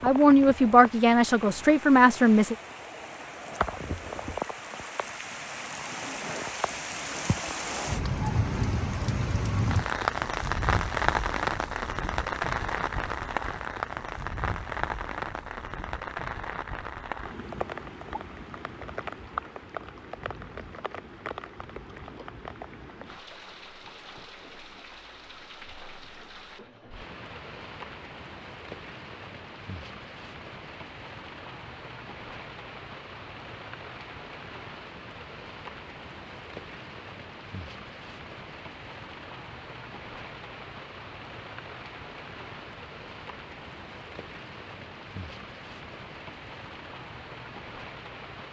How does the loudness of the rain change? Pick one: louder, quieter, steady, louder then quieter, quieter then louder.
quieter.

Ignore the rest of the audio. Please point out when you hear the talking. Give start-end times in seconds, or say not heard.
0.0-2.5.